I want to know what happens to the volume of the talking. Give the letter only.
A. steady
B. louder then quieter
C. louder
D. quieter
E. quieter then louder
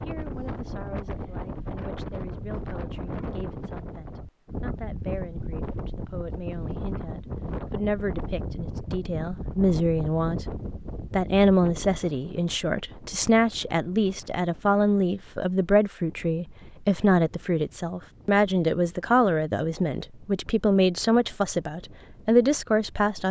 C.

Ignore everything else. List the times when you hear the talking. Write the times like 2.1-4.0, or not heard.
0.1-10.4, 11.1-23.2.